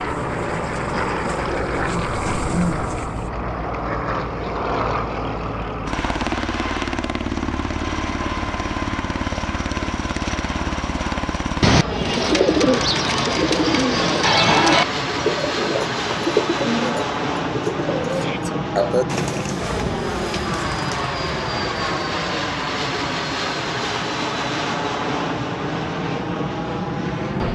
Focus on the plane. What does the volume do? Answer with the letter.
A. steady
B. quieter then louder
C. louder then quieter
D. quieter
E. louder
A.